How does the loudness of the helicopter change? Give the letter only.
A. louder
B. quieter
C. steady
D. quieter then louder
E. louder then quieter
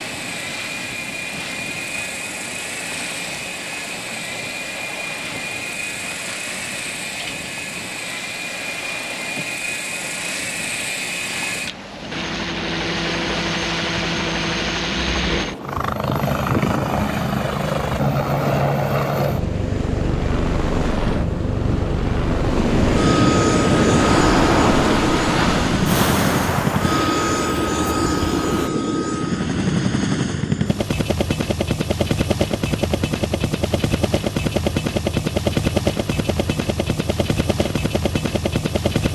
A.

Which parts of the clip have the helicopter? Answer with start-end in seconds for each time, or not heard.
0.0-39.1.